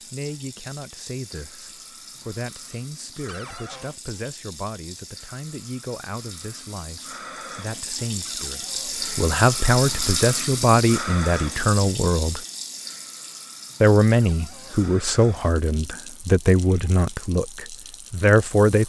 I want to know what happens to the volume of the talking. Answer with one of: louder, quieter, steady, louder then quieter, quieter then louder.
louder.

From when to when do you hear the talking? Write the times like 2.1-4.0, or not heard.
0.0-12.4, 13.8-18.8.